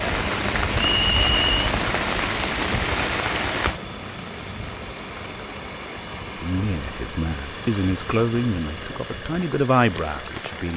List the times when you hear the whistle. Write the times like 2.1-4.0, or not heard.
0.8-1.7.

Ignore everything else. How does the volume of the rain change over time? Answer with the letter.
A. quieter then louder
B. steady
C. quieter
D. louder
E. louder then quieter
C.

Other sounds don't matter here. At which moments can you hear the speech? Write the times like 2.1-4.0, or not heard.
6.3-10.7.